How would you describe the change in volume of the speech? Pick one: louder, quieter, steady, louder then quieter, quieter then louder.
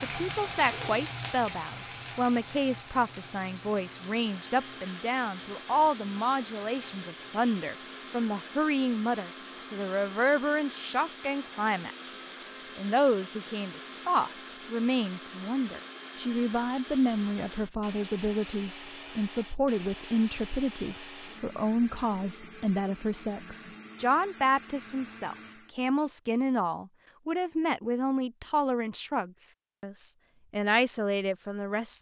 steady.